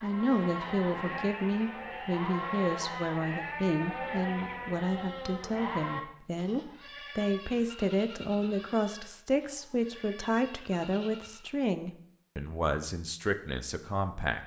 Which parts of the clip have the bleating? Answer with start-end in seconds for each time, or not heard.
0.0-11.6.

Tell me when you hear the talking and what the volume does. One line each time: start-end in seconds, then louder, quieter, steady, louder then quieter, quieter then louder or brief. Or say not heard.
0.0-14.4 steady.